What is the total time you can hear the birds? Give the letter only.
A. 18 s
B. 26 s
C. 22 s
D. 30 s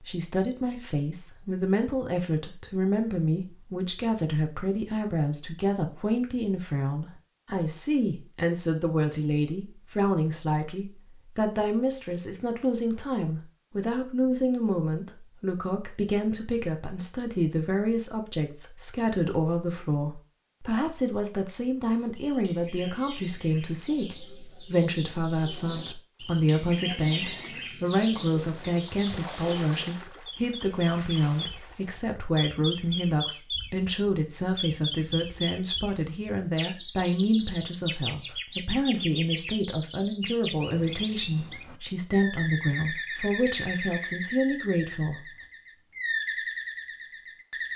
B.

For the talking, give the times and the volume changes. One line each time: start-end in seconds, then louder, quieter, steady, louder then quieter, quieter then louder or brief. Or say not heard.
0.0-45.2 steady.